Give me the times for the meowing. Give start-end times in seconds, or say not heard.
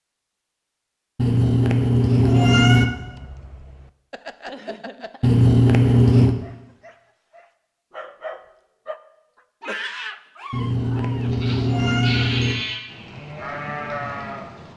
1.1-2.9, 5.2-6.3, 10.5-12.6.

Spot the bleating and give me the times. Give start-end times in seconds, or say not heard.
11.2-14.7.